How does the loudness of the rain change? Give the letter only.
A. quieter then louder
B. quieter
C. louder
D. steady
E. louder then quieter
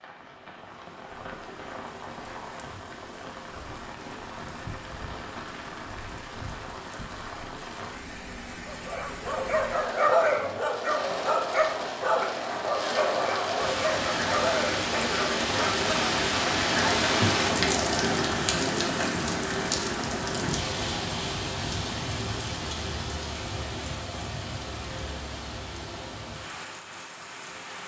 E.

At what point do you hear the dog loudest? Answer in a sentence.
The loudest moment of the dog is at 10 seconds.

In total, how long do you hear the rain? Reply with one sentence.
The rain can be heard for 28 seconds in total.